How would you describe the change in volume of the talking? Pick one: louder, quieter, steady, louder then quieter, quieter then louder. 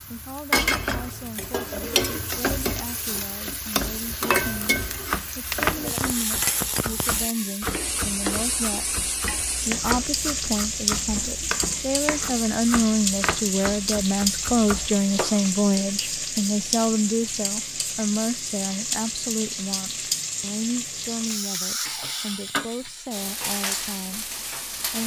louder then quieter.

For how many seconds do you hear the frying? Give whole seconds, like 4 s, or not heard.
25 s.